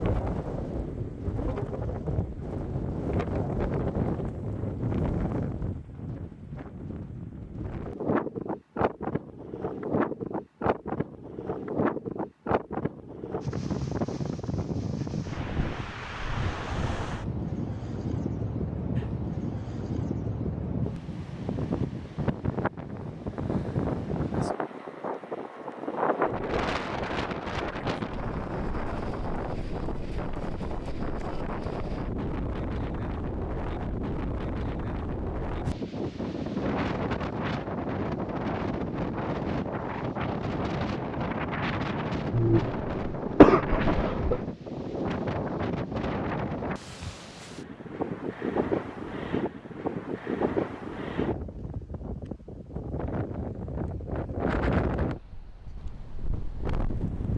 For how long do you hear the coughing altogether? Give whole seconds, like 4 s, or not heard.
2 s.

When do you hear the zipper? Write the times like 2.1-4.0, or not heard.
not heard.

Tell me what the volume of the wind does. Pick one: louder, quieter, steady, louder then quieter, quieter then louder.
steady.